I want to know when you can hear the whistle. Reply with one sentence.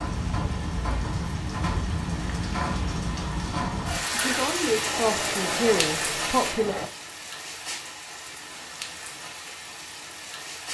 You can't hear the whistle here.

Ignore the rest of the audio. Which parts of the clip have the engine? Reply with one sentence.
You can hear the engine from 4.8 to 6.9 s.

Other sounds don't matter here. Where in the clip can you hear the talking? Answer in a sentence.
The talking can be heard from 4.1 to 6.8 s.